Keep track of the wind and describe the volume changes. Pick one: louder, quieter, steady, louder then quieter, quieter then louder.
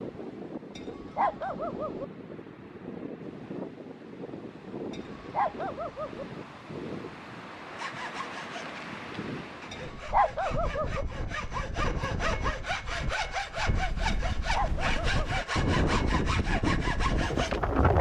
louder.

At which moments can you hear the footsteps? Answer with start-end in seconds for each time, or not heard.
not heard.